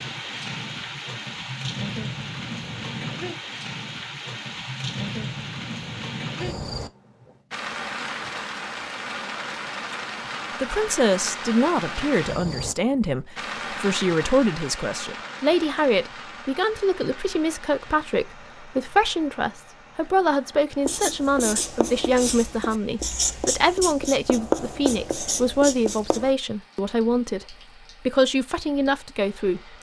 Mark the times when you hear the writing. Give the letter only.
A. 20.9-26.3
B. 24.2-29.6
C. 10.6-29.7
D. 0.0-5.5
A.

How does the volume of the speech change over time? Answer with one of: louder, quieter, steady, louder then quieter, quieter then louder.
steady.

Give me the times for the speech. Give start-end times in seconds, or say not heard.
10.6-29.7.